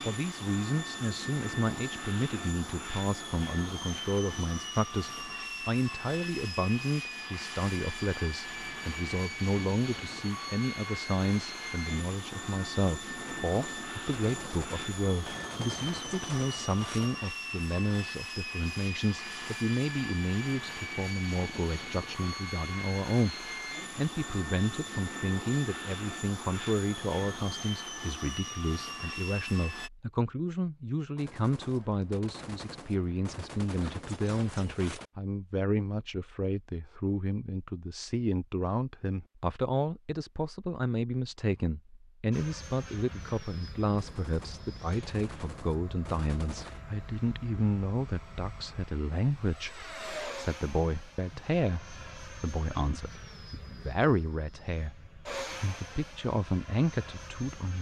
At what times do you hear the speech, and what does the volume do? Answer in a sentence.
You can hear the speech from 0.1 to 57.7 s, at a steady volume.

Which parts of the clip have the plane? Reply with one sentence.
You can hear the plane from 0.0 to 29.9 s and from 42.3 to 57.7 s.